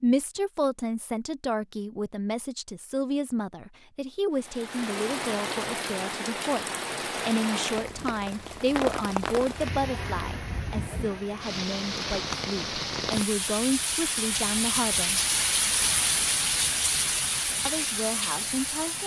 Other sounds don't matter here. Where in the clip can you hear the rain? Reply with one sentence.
The rain can be heard from 4.3 to 19.0 s.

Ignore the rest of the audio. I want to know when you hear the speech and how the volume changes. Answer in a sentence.
The speech can be heard from 0.0 to 15.2 s, at a steady volume; and briefly from 17.6 to 19.0 s.